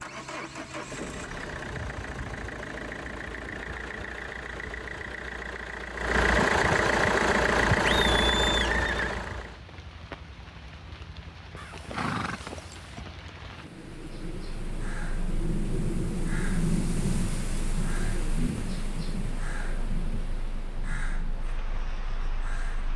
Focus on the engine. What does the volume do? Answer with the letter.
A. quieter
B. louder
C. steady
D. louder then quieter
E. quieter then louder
B.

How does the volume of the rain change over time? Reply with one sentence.
The volume of the rain goes up, then down.